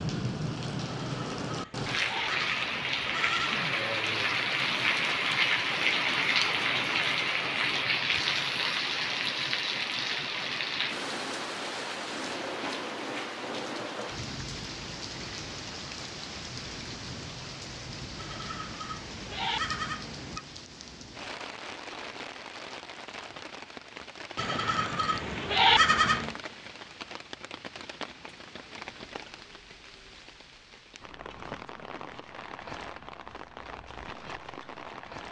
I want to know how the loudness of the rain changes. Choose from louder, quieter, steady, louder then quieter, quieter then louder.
quieter.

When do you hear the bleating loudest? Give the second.
26 s.